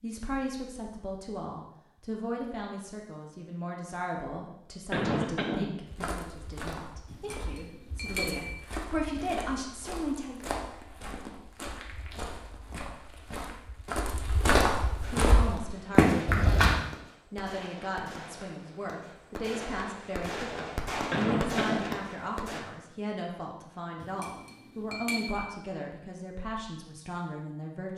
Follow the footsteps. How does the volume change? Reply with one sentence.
The volume of the footsteps goes up.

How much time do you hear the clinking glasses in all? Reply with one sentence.
The clinking glasses can be heard for 3 seconds in total.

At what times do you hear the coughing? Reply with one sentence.
You can hear the coughing from 4.9 to 5.7 s and from 21.1 to 21.9 s.